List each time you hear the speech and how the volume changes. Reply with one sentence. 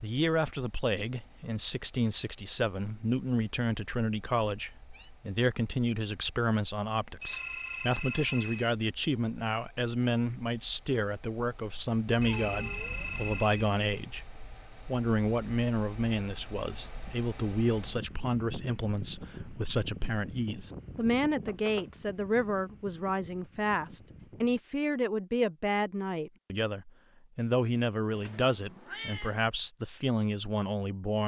The speech can be heard from 0.0 to 31.2 s, at a steady volume.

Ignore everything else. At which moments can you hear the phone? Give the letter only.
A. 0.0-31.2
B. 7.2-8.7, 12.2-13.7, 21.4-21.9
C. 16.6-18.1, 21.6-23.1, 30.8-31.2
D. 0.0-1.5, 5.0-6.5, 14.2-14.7
B.